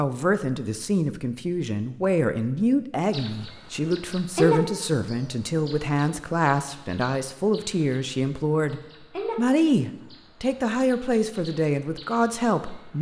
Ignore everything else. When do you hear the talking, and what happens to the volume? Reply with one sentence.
You can hear the talking from 0.0 to 12.9 s, at a steady volume.